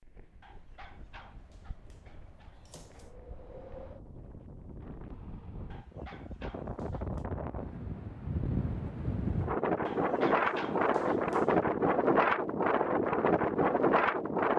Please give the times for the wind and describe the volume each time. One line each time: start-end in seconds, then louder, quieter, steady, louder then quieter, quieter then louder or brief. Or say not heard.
0.0-14.5 louder.